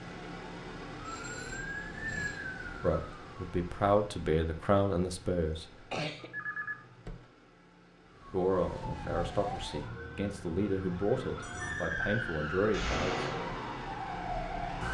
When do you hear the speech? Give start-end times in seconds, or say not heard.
2.8-5.7, 8.3-13.2.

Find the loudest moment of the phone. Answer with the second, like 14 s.
7 s.